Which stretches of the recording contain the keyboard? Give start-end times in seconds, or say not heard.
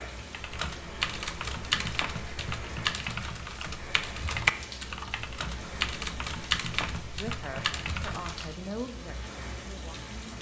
0.3-8.6.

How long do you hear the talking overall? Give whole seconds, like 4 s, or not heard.
3 s.